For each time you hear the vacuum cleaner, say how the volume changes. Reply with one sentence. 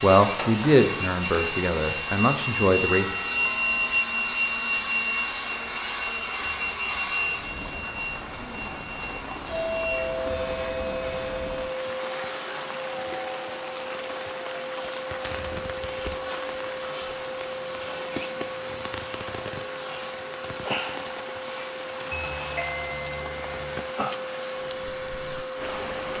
The vacuum cleaner can be heard from 0.0 to 26.1 s, getting quieter.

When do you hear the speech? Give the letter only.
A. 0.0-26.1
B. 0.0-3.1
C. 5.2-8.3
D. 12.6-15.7
B.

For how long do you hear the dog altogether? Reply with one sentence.
The dog can't be heard in this clip.